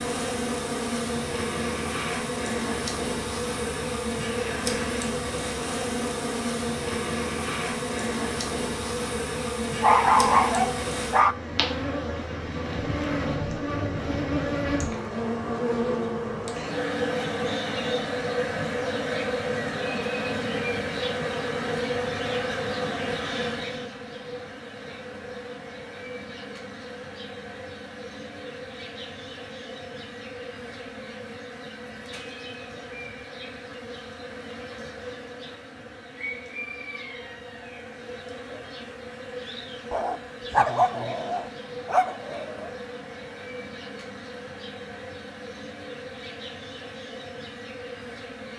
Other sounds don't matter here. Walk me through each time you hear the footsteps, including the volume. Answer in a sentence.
The footsteps can't be heard in this clip.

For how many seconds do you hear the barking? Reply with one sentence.
You can hear the barking for 4 seconds altogether.